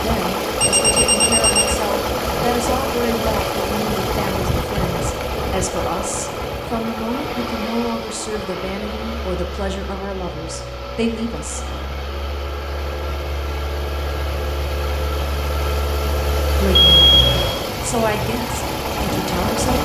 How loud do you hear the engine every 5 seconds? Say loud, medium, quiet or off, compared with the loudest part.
loud, medium, medium, loud.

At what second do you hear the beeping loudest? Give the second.
17 s.